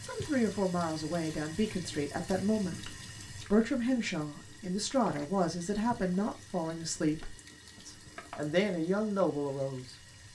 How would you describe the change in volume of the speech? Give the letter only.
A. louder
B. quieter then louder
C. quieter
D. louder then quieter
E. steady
E.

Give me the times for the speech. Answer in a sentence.
You can hear the speech from 0.0 to 10.3 s.